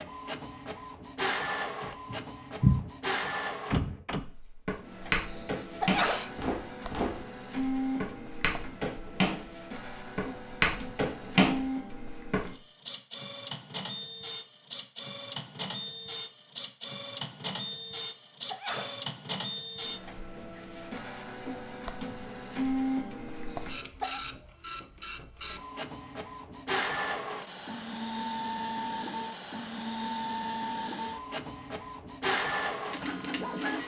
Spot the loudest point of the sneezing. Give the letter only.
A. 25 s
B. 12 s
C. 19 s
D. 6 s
D.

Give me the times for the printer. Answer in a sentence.
You can hear the printer from 0.0 to 33.8 s.